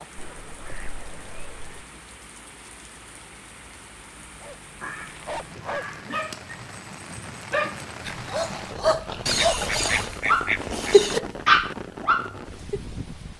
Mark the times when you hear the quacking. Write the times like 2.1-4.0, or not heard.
0.1-1.9, 4.8-6.2, 9.2-11.2.